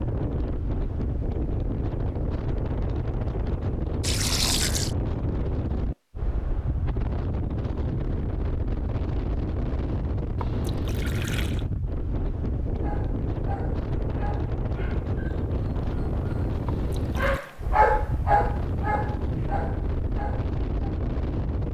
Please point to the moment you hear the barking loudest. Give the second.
18 s.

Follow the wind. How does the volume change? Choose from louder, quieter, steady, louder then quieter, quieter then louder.
steady.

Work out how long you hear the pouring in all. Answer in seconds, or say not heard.
3 s.